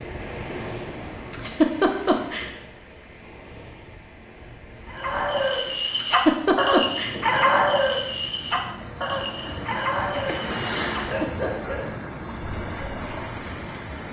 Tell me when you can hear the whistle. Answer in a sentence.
You can't hear the whistle here.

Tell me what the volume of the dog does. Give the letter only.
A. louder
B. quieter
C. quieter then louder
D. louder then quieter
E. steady
B.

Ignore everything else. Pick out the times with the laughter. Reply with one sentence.
You can hear the laughter from 1.3 to 2.5 s, from 6.0 to 7.2 s and from 11.1 to 11.5 s.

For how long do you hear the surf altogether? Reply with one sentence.
You can hear the surf for 14 seconds altogether.